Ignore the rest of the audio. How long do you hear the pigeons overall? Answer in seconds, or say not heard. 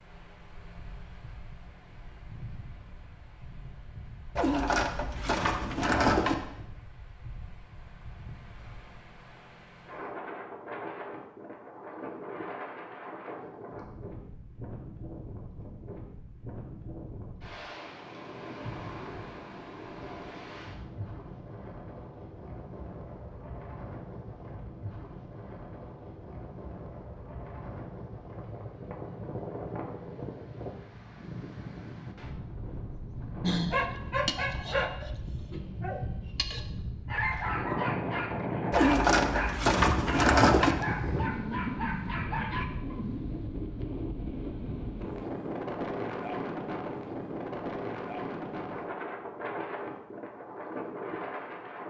4 s.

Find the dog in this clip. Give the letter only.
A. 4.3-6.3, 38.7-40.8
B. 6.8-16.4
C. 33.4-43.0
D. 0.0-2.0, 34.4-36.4
C.